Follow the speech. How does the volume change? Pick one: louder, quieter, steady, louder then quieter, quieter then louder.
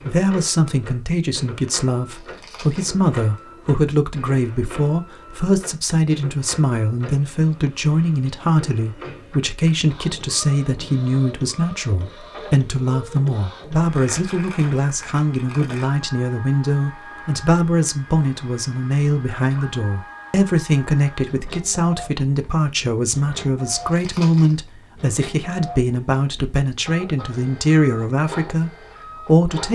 steady.